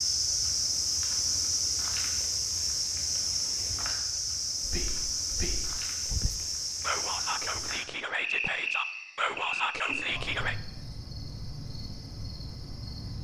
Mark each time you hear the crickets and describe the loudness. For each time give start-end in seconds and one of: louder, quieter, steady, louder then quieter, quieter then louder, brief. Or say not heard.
0.0-13.1 quieter.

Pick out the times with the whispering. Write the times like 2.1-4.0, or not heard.
4.2-10.6.